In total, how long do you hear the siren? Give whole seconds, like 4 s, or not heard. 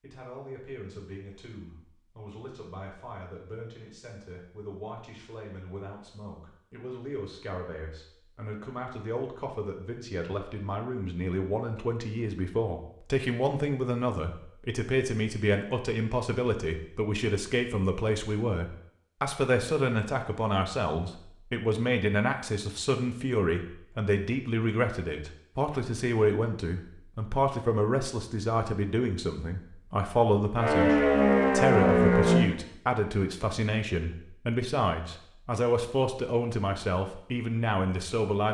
2 s.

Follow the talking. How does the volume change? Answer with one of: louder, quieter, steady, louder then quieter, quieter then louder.
louder.